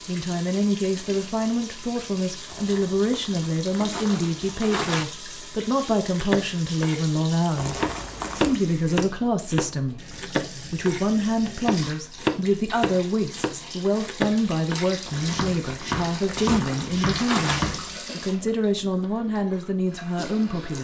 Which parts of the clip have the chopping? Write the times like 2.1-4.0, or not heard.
6.0-17.9.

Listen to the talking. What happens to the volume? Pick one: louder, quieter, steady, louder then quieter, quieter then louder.
steady.